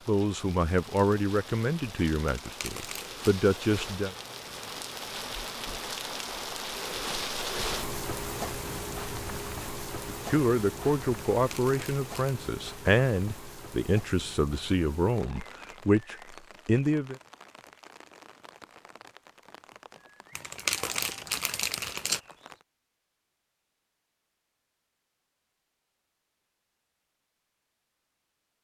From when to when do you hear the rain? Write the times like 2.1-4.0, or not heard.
0.0-22.6.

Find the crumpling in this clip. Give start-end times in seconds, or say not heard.
2.3-3.2, 11.3-12.3, 20.4-22.2.